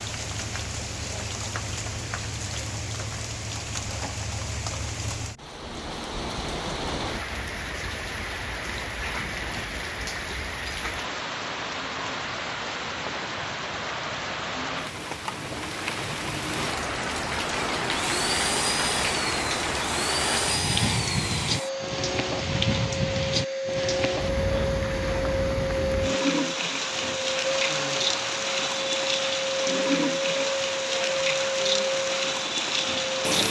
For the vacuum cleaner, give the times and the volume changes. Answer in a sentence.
You can hear the vacuum cleaner from 17.5 to 33.4 s, at a steady volume.